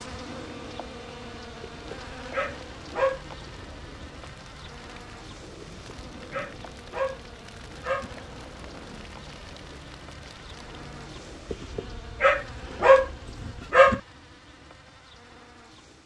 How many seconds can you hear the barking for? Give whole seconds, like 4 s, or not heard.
7 s.